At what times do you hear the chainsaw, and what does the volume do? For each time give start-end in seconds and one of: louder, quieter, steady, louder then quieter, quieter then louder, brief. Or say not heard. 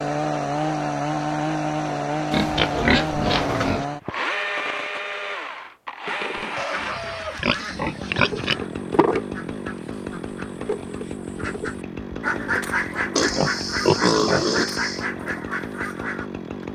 0.0-16.7 quieter.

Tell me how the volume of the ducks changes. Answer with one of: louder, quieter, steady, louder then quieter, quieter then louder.
louder.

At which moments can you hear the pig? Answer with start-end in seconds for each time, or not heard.
2.3-3.9, 6.5-8.6, 13.2-15.1.